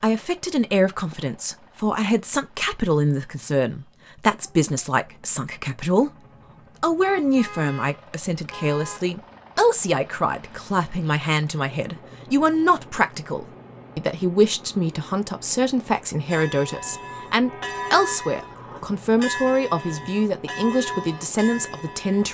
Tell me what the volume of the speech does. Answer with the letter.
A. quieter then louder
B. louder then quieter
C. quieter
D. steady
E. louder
D.